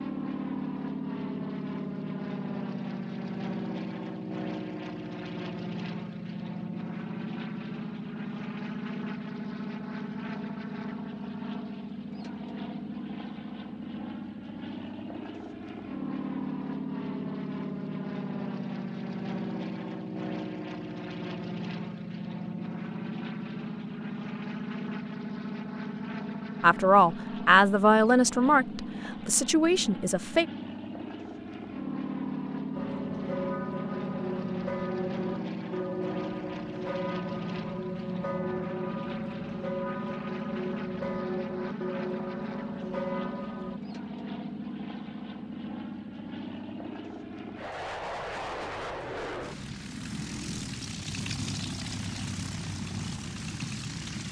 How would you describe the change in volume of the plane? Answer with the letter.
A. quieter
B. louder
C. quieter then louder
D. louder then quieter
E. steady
E.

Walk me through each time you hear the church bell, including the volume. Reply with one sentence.
You can hear the church bell from 32.8 to 43.8 s, at a steady volume.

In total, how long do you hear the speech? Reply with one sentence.
The speech can be heard for 4 seconds in total.